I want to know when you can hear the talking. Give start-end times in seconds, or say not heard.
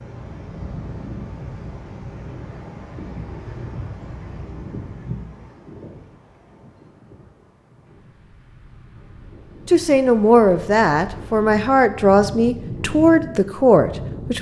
9.7-14.3.